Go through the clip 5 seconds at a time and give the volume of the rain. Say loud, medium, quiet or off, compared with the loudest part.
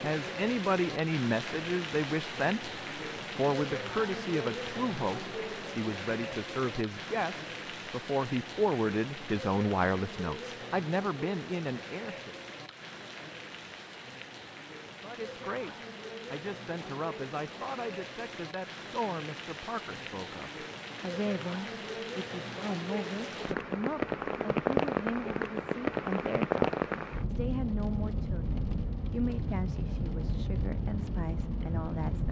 medium, medium, medium, medium, loud, loud, loud.